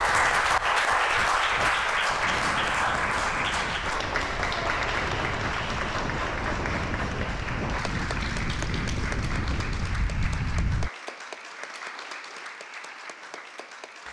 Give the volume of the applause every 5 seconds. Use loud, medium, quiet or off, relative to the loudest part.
loud, medium, quiet.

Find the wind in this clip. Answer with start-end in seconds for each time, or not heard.
0.0-10.9.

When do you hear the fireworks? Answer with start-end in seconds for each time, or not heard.
not heard.